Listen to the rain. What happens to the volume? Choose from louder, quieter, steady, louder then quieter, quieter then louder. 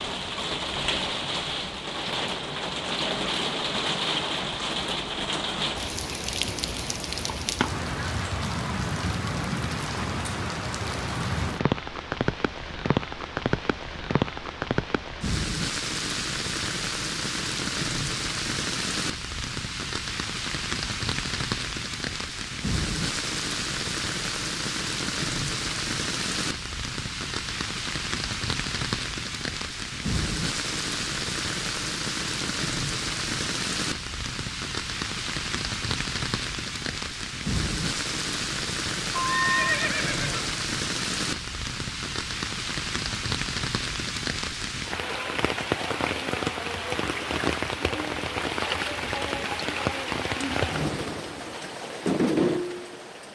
steady.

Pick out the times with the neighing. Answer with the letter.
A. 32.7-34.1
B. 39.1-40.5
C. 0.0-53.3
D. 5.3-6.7
B.